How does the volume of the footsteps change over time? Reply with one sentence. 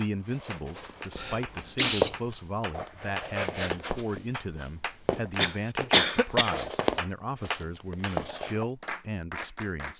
The volume of the footsteps goes down, then up.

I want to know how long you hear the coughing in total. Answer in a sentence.
You can hear the coughing for 2 seconds altogether.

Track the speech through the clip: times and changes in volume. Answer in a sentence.
The speech can be heard from 0.0 to 9.9 s, at a steady volume.